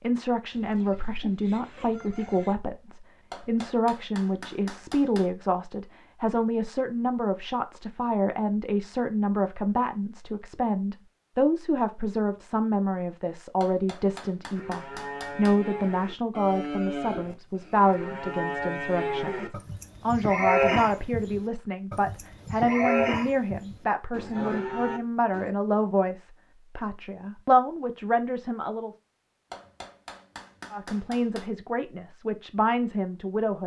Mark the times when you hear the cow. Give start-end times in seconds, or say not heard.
14.6-25.5.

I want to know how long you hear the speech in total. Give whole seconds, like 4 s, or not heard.
32 s.